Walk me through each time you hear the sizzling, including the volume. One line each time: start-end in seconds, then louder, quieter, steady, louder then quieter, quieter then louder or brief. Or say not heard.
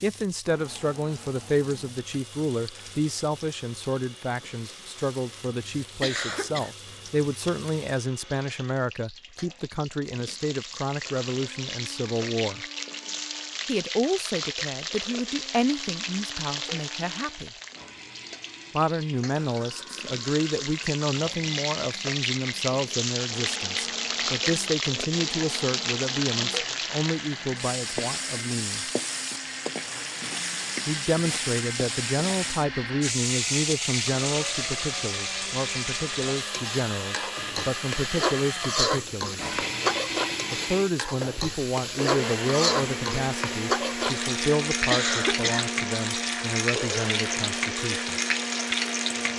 0.0-49.3 louder.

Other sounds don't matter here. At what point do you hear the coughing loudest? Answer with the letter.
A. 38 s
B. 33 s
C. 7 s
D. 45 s
D.